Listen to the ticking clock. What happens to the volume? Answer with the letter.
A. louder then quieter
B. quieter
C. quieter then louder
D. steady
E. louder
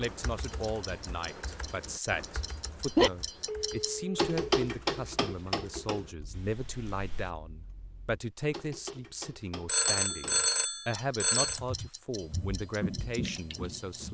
A.